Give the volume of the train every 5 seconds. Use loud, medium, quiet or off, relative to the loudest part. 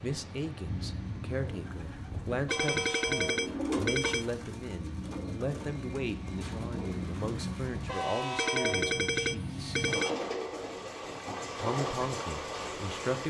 medium, loud, loud.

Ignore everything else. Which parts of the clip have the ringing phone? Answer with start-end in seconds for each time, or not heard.
2.5-4.2, 8.3-10.1.